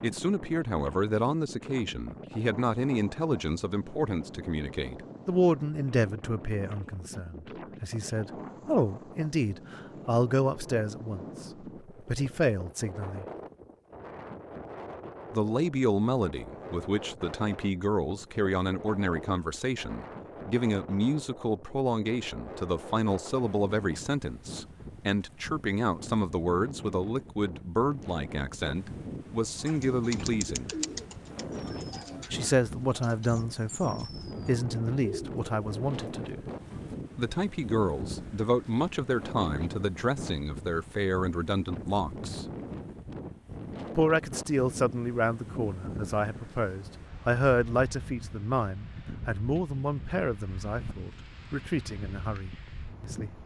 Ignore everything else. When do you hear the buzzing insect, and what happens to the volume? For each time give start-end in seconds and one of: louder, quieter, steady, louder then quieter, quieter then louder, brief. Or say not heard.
not heard.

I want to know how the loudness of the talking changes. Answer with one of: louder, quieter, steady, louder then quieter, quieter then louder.
steady.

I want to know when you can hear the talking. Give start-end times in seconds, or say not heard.
0.0-13.2, 15.3-30.8, 32.3-36.4, 37.1-42.5, 44.0-53.4.